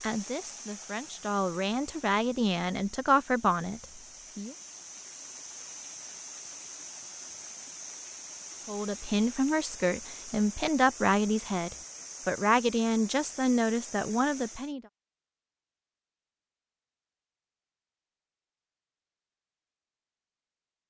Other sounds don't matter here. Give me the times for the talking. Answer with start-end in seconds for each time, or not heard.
0.0-4.5, 8.7-14.8.